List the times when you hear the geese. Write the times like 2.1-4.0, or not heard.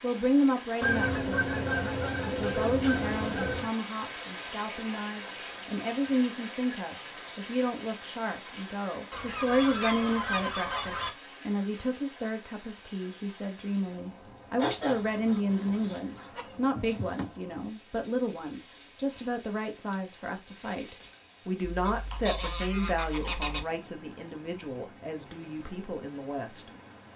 0.8-3.7, 9.1-11.2, 14.6-17.3, 21.6-23.6.